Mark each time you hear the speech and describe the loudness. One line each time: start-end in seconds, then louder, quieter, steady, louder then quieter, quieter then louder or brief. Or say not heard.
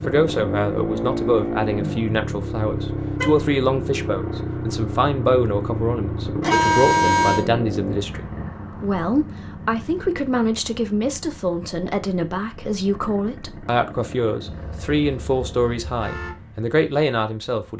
0.0-17.7 steady.